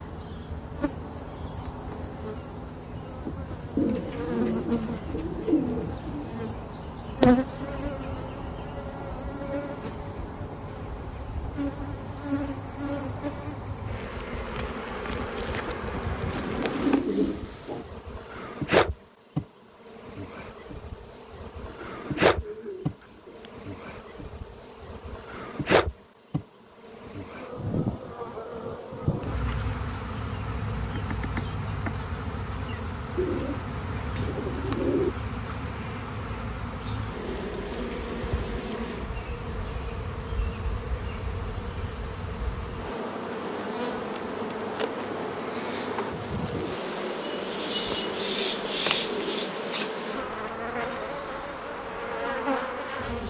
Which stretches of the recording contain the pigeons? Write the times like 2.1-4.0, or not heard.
3.8-6.3, 16.3-17.9, 21.6-23.5, 33.1-35.1, 46.5-49.5.